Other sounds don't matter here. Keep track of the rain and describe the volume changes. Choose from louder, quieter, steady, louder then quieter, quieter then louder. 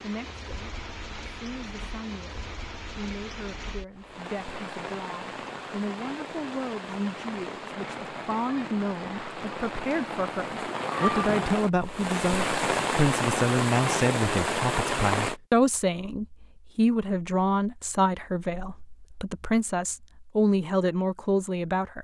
louder.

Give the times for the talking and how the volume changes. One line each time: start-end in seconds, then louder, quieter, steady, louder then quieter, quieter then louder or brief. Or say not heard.
0.0-21.9 louder.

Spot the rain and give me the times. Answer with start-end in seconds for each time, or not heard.
0.0-15.3.